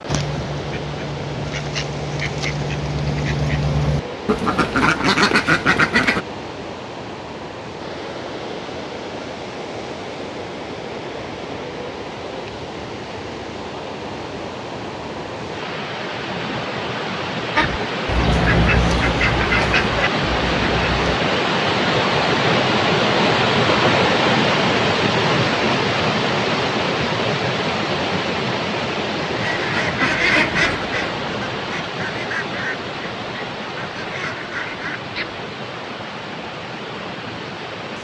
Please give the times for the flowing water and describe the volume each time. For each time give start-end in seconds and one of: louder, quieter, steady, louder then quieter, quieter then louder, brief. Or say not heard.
0.0-37.9 louder then quieter.